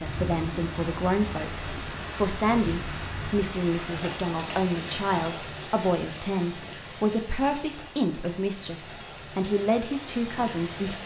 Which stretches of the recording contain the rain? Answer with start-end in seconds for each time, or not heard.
0.0-11.0.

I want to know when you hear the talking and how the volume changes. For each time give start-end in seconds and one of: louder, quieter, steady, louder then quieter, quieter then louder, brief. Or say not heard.
0.0-11.0 steady.